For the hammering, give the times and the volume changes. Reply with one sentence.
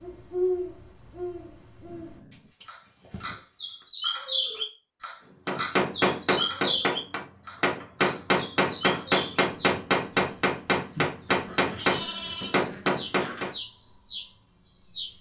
The hammering can be heard from 5.5 to 13.5 s, at a steady volume.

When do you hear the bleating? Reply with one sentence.
The bleating can be heard from 2.3 to 3.9 s and from 10.9 to 12.6 s.